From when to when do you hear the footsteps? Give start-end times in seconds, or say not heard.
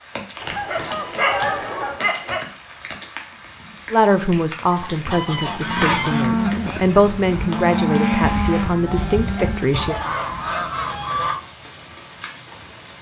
not heard.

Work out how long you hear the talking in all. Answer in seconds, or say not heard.
6 s.